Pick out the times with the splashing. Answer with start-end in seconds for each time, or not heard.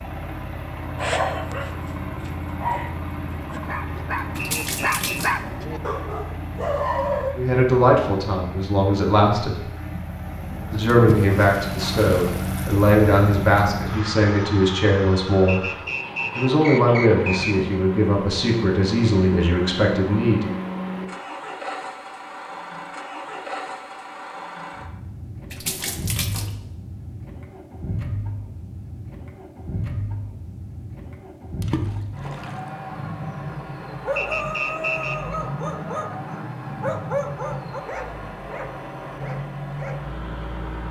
4.3-5.4, 10.8-12.7, 25.5-26.6, 31.6-32.5.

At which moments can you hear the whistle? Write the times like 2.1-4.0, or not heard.
4.4-5.2, 15.4-17.6, 34.1-35.4.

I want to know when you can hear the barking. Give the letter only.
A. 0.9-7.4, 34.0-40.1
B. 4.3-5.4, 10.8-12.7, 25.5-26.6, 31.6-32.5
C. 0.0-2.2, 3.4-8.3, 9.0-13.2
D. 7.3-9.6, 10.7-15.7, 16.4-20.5
A.